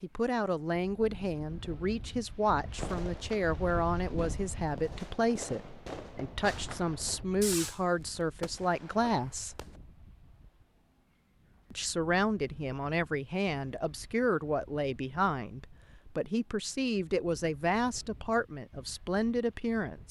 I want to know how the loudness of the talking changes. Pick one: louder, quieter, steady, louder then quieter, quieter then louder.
steady.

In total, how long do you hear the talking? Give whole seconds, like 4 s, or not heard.
18 s.